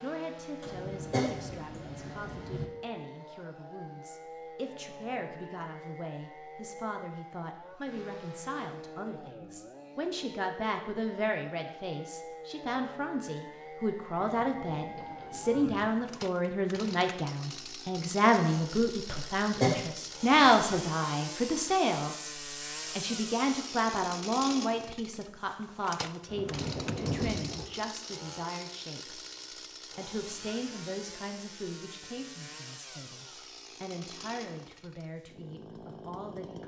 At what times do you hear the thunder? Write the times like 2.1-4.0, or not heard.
0.7-2.6, 14.2-16.2, 26.2-27.6.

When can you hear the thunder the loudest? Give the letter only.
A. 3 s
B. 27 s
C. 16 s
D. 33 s
B.